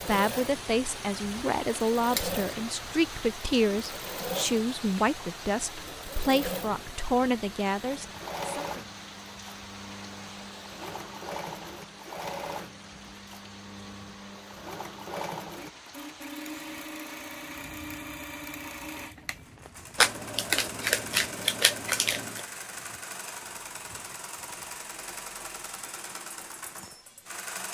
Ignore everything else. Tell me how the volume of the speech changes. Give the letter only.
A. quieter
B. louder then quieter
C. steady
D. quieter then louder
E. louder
C.